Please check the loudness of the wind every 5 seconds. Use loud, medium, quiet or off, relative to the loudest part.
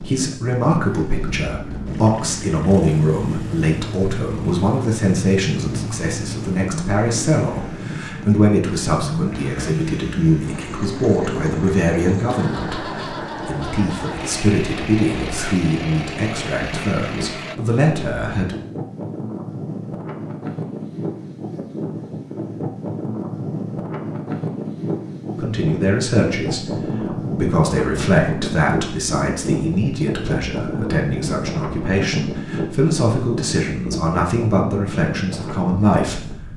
medium, medium, medium, medium, loud, loud, loud, medium.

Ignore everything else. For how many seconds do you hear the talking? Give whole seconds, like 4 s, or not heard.
30 s.